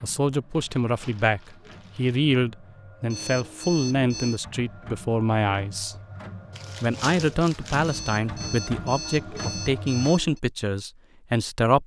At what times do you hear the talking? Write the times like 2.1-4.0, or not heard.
0.0-6.0, 6.8-11.8.